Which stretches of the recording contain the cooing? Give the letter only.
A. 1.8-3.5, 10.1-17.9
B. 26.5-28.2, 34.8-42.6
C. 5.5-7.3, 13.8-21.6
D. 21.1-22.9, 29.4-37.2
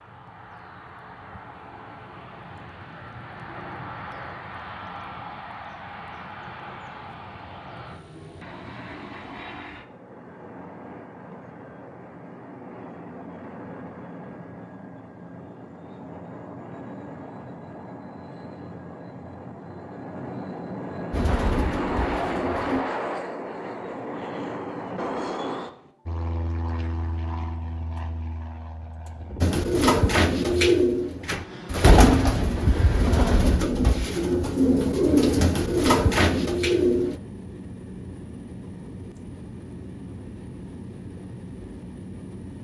D.